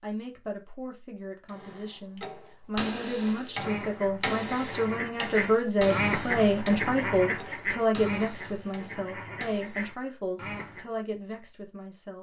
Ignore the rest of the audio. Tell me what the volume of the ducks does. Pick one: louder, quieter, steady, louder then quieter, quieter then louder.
louder then quieter.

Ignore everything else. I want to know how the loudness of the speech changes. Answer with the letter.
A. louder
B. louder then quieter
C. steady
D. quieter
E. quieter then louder
B.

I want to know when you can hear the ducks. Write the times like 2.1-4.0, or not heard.
3.4-10.8.